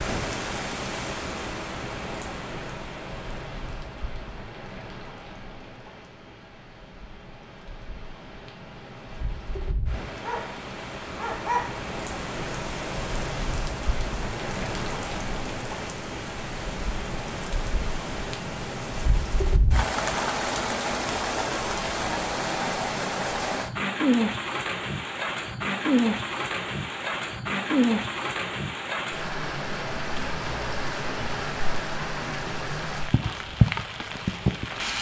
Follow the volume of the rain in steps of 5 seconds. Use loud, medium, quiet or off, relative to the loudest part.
medium, quiet, medium, medium, loud, loud, loud.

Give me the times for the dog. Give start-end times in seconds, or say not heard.
10.2-11.8.